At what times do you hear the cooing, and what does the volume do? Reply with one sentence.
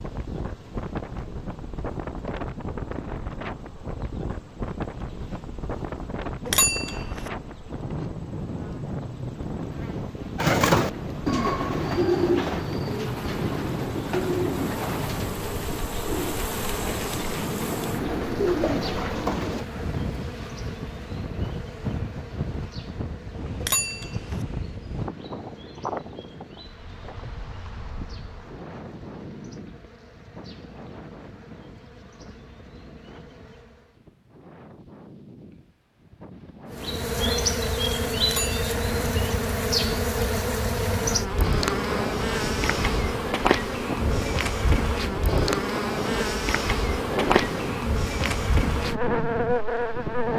You can hear the cooing from 10.3 to 19.6 s, getting quieter then louder.